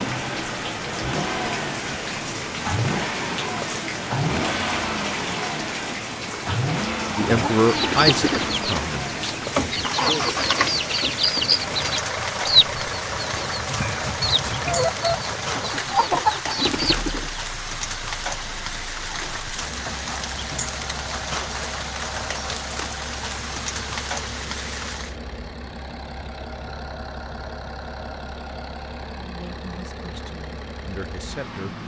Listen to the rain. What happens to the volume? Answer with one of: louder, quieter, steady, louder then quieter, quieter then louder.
steady.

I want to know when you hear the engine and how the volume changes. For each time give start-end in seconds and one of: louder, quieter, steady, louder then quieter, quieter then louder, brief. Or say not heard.
0.0-31.8 quieter.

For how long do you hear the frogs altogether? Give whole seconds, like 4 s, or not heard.
not heard.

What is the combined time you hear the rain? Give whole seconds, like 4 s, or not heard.
25 s.